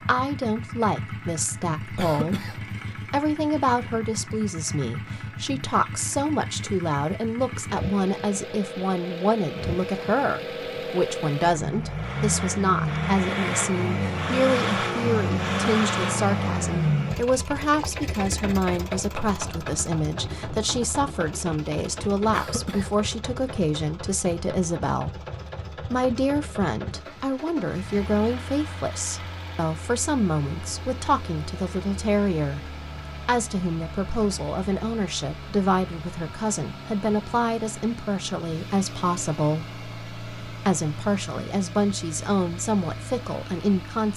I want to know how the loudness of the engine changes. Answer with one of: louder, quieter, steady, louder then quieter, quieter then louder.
louder then quieter.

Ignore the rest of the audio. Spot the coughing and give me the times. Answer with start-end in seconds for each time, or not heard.
1.9-2.6, 22.3-22.9.